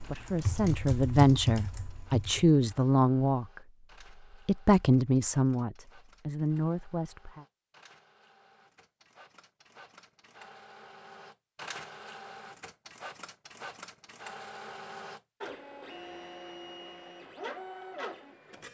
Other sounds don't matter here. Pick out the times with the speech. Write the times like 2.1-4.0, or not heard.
0.0-7.5.